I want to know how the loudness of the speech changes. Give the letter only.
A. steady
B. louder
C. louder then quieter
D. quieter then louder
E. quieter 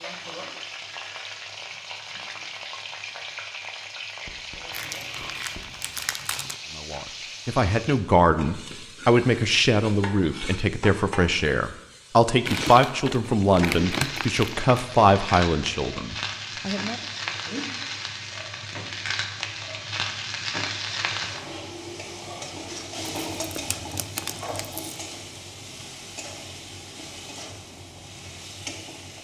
A.